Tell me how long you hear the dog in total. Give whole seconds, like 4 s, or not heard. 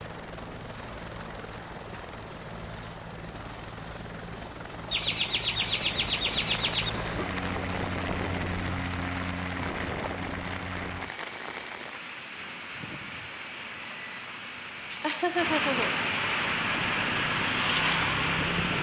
not heard.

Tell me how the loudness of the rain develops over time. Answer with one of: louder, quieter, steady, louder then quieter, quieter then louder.
louder.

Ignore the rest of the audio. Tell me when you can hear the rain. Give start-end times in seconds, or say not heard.
5.5-18.7.